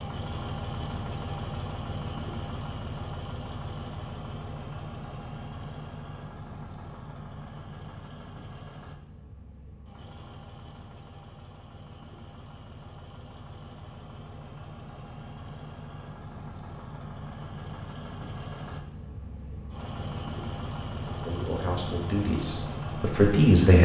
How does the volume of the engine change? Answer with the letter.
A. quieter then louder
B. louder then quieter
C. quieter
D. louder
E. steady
A.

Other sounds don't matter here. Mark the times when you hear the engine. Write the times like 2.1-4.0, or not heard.
0.0-23.8.